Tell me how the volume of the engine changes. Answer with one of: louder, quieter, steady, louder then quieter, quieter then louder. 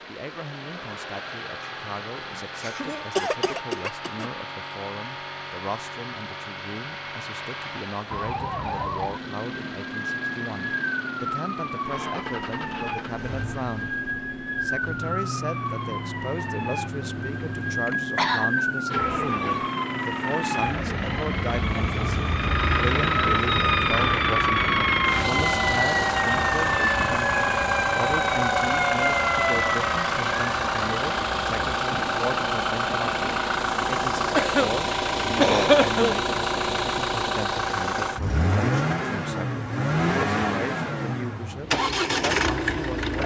louder.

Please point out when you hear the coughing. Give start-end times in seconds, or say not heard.
2.4-4.3, 17.9-18.6, 34.4-36.1.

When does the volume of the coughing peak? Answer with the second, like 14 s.
36 s.